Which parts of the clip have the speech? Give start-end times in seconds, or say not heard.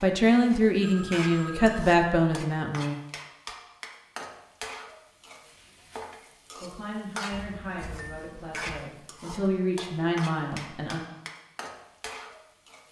0.0-3.0, 6.6-11.0.